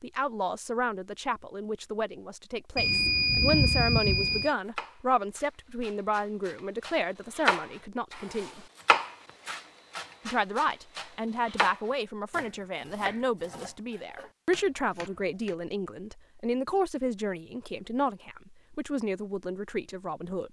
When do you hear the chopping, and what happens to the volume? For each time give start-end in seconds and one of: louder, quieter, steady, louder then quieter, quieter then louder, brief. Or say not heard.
3.5-15.6 louder then quieter.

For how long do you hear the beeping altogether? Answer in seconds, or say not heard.
2 s.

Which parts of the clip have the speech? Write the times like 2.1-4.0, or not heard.
0.0-8.7, 10.2-20.4.